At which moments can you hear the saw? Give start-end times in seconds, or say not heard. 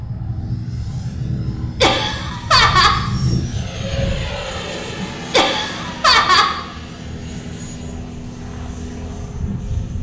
not heard.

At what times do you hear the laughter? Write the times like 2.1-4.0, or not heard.
1.8-3.0, 5.3-6.5.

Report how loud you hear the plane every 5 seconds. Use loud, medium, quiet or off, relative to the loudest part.
loud, medium.